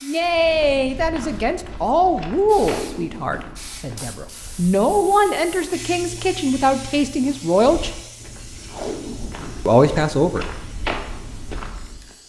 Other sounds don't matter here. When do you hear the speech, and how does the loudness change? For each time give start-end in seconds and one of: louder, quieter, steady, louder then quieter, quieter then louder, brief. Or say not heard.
0.0-7.9 quieter then louder
9.7-10.4 brief.